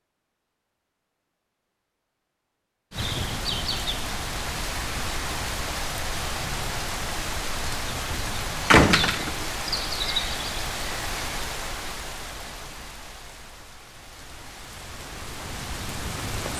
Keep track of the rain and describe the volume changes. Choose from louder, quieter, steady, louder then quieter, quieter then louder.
quieter.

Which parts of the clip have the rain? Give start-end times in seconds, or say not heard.
2.9-16.5.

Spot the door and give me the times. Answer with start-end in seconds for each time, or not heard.
8.7-9.4.